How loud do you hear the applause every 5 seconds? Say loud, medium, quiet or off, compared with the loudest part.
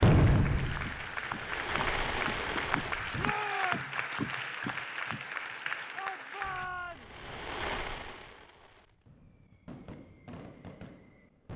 loud, loud, off.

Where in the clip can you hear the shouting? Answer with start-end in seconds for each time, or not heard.
3.1-3.9, 6.0-7.1.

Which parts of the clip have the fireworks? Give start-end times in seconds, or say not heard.
0.0-3.4, 6.4-11.5.